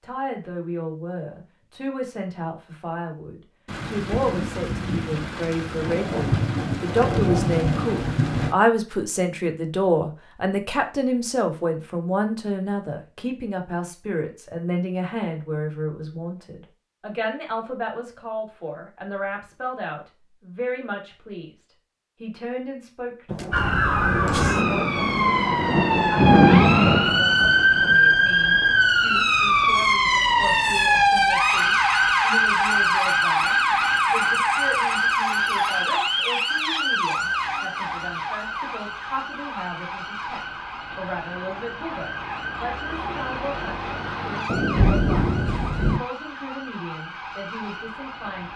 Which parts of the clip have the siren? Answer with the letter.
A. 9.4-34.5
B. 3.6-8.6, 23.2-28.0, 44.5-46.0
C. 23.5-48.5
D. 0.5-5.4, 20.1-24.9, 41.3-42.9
C.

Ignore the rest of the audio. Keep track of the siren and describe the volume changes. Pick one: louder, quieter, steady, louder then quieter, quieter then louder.
quieter.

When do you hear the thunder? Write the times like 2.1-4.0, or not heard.
3.6-8.6, 23.2-28.0, 44.5-46.0.